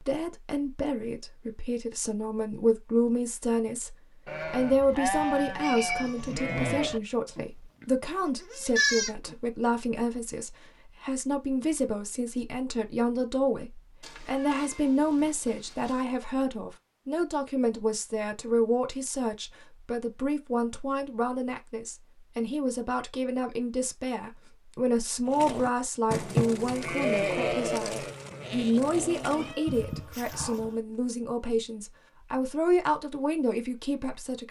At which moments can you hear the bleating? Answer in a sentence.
The bleating can be heard from 4.2 to 9.3 s and from 25.2 to 30.7 s.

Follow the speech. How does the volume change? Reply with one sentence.
The loudness of the speech stays about the same.